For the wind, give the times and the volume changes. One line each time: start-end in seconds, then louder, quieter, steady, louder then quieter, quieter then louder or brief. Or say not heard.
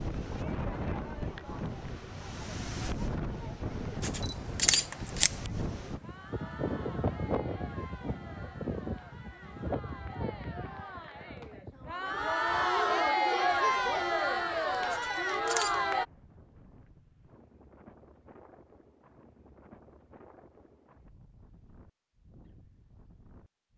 0.0-23.7 quieter.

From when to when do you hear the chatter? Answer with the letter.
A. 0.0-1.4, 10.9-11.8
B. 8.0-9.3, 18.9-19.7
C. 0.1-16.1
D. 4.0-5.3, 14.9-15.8
C.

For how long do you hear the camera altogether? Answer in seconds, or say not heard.
2 s.